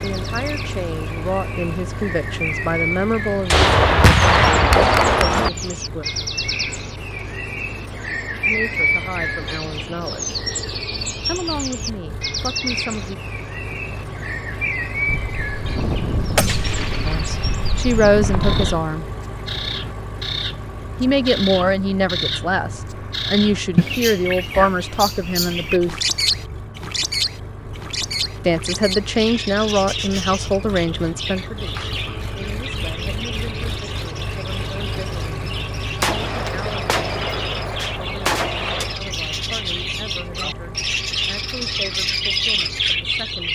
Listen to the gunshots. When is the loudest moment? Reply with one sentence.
The volume of the gunshots peaks at 4 seconds.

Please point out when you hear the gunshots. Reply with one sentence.
The gunshots can be heard from 3.5 to 5.5 s, from 15.1 to 18.8 s and from 36.0 to 39.0 s.